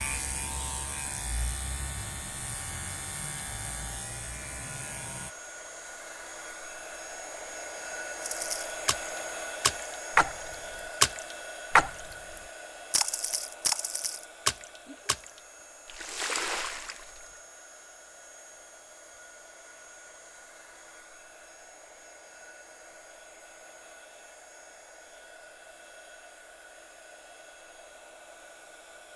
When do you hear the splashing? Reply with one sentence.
The splashing can be heard from 8.2 to 17.2 s.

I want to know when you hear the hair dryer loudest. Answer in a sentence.
The loudest moment of the hair dryer is at 9 seconds.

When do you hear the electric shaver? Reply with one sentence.
You can hear the electric shaver from 0.0 to 5.3 s.